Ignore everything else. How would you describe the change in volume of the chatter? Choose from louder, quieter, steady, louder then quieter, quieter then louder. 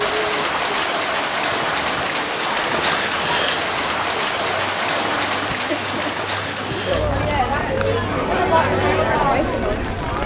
louder.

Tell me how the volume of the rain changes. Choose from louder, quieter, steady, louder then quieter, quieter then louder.
quieter.